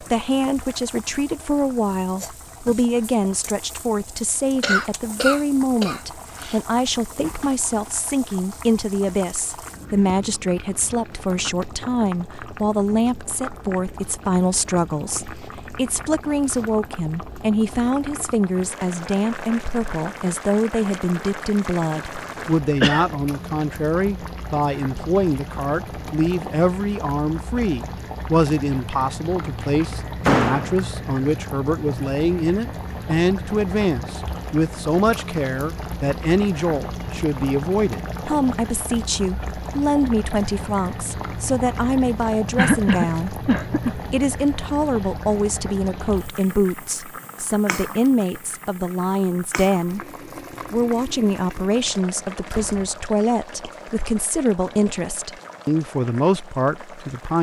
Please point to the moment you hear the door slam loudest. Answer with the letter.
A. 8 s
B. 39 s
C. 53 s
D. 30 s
D.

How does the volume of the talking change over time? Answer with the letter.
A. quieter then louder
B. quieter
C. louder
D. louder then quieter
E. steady
E.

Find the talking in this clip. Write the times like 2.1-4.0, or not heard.
0.1-50.0, 50.7-57.3.